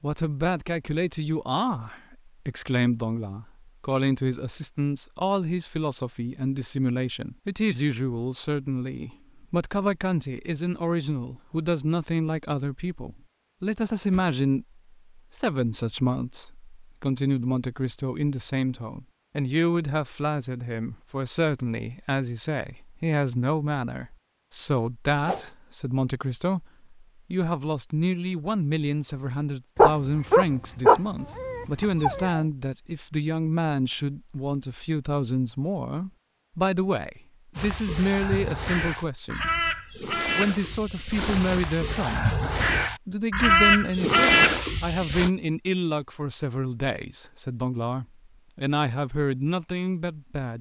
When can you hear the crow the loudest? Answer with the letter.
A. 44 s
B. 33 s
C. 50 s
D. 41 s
A.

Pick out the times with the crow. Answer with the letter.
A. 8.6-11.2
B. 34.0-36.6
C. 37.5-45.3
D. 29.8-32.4
C.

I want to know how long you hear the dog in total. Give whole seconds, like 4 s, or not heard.
3 s.